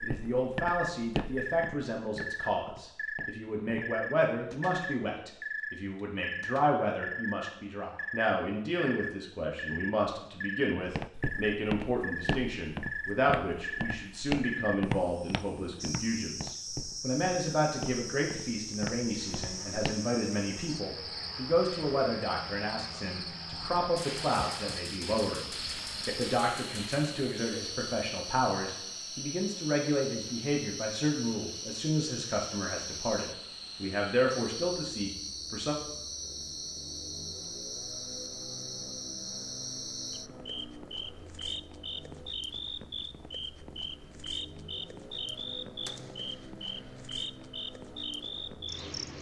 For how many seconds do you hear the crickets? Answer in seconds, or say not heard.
49 s.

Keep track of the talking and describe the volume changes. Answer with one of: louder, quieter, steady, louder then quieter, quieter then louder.
steady.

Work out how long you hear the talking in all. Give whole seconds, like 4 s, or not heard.
36 s.